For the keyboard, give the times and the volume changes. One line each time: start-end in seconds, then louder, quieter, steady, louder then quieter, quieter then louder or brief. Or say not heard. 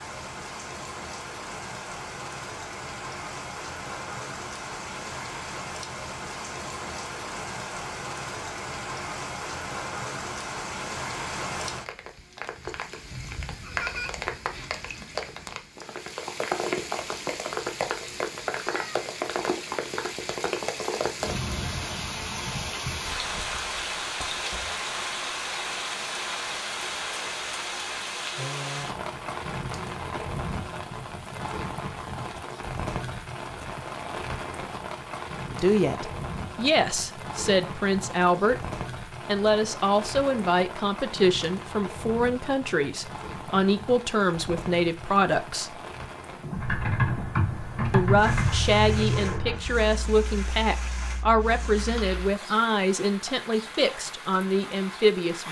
46.5-52.3 quieter.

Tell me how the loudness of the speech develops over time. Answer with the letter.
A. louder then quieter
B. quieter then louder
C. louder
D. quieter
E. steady
E.